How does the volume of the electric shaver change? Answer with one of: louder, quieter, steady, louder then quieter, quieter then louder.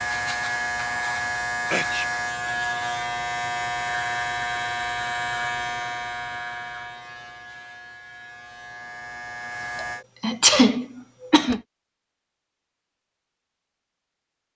quieter.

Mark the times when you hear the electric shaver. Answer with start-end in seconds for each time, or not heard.
0.0-10.1.